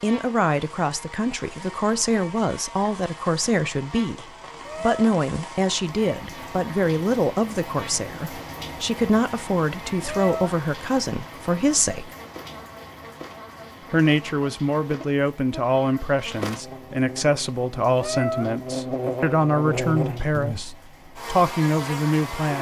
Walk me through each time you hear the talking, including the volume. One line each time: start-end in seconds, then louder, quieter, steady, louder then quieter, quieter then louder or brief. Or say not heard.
0.0-12.2 steady
13.9-22.5 steady.